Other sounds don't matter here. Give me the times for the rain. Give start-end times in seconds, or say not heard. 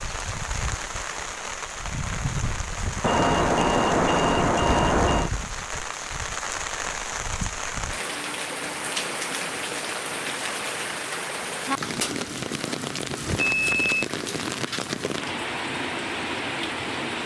0.0-17.2.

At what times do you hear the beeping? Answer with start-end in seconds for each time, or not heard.
3.0-5.3, 13.4-14.1.